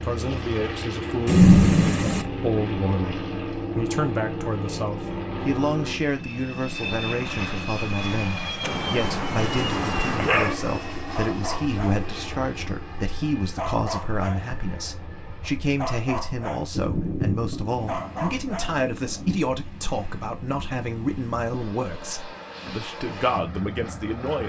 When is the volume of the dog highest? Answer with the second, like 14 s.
10 s.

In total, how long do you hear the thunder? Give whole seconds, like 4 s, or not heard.
4 s.